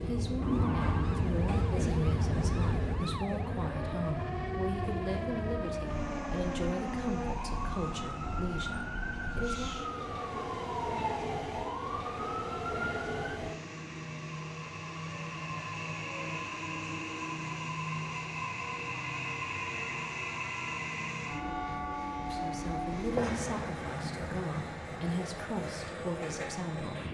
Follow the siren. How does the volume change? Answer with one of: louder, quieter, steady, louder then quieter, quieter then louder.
louder.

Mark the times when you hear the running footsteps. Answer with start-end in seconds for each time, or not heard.
not heard.